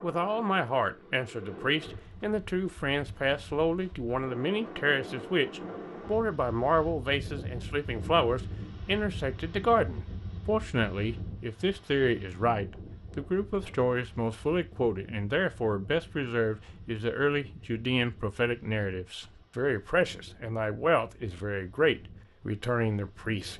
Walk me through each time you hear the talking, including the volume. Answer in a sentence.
You can hear the talking from 0.0 to 23.5 s, at a steady volume.